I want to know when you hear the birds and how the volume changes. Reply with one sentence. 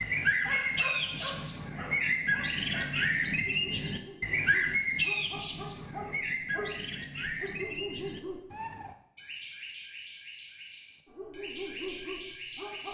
You can hear the birds from 0.0 to 12.8 s, getting quieter.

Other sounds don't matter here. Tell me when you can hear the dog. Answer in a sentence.
You can hear the dog from 0.0 to 8.4 s and from 11.1 to 12.8 s.